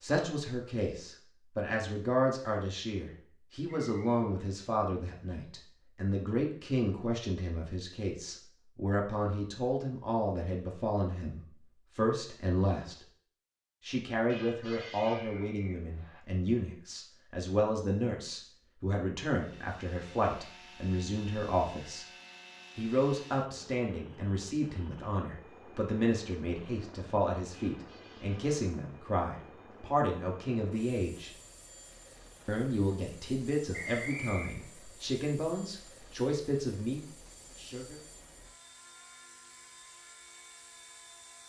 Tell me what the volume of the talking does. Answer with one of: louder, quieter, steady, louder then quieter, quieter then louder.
steady.